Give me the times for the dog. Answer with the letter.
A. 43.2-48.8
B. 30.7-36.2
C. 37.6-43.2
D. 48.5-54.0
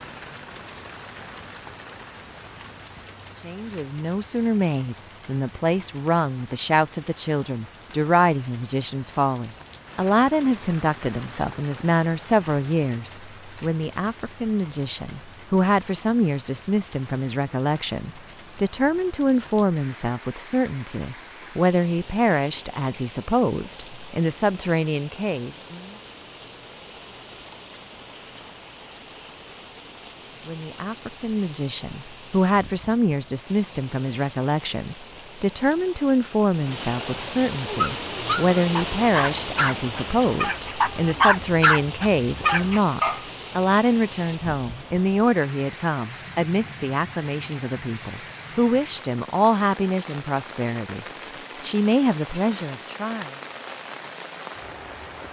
C.